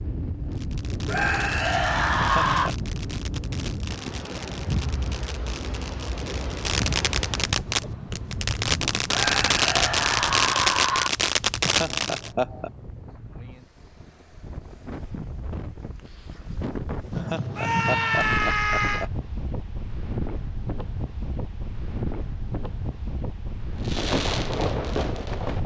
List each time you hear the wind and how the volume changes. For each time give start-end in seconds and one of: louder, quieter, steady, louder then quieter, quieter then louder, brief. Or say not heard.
0.0-25.6 quieter then louder.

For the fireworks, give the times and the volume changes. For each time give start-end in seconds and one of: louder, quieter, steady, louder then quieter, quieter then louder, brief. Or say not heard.
0.5-12.3 louder
23.9-25.6 brief.